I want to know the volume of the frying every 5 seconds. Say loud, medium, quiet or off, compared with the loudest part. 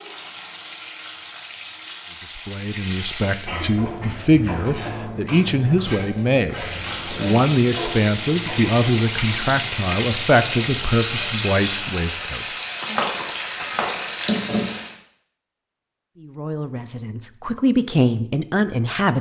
medium, loud, loud, off.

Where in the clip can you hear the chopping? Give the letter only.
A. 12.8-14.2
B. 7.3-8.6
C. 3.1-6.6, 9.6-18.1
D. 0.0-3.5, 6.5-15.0
A.